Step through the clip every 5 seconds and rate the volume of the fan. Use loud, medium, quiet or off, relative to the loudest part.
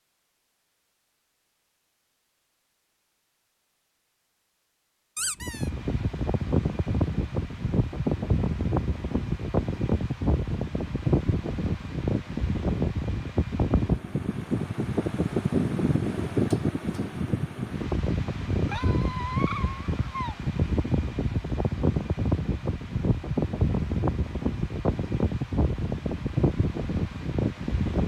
off, loud, loud, loud, loud, loud.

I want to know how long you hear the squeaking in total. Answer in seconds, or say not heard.
2 s.